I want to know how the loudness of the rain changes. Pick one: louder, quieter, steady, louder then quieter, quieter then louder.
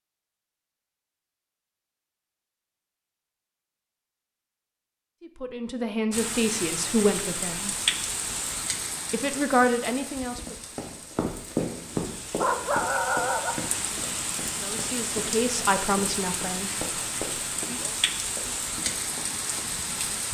quieter then louder.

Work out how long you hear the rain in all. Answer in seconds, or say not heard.
14 s.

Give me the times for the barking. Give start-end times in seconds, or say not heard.
11.7-13.6.